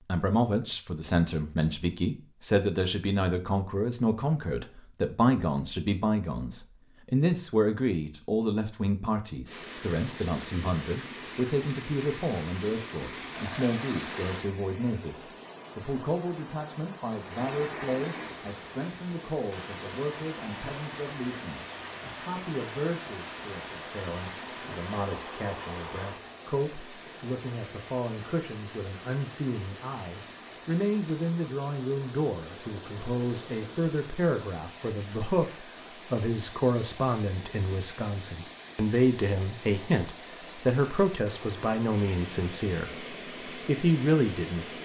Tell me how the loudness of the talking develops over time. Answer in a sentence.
The volume of the talking goes down, then up.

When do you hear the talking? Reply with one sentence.
The talking can be heard from 0.1 to 44.7 s.